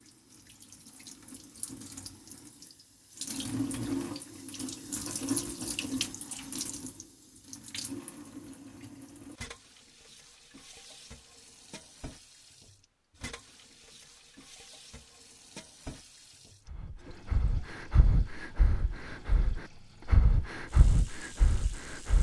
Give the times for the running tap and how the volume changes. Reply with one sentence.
The running tap can be heard from 0.0 to 22.1 s, getting quieter.